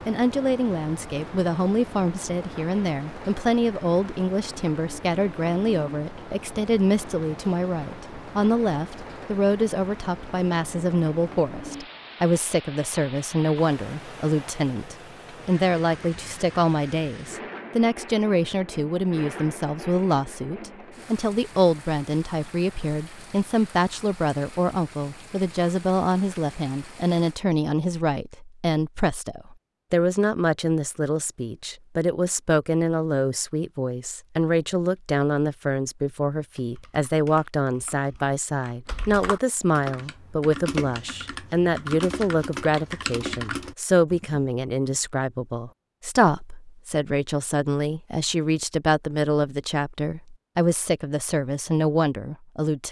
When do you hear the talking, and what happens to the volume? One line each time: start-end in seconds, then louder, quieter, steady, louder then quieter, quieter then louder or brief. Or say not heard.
0.1-52.8 steady.